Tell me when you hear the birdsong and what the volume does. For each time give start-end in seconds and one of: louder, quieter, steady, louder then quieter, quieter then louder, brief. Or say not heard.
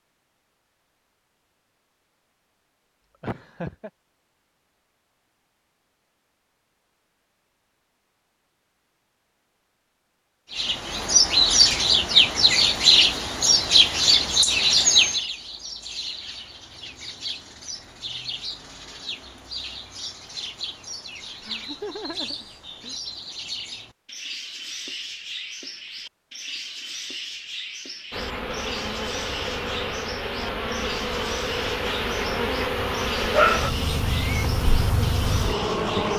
10.5-36.1 quieter.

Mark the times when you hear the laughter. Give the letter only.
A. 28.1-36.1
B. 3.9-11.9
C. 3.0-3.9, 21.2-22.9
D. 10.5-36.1
C.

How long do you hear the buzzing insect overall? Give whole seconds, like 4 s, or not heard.
8 s.